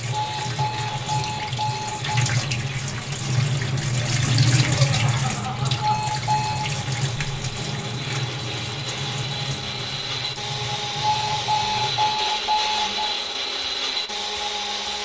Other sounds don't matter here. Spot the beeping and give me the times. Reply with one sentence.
The beeping can be heard from 0.1 to 2.1 s, from 5.8 to 6.6 s and from 11.0 to 13.1 s.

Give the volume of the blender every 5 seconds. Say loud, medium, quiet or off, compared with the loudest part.
medium, medium, loud.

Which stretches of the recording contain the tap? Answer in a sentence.
You can hear the tap from 0.0 to 12.2 s.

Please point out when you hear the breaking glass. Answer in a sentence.
The breaking glass can't be heard in this clip.